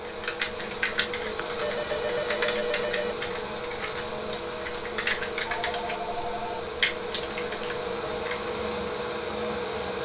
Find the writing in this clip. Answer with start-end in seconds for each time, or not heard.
not heard.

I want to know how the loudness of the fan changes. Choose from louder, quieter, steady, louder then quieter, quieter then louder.
steady.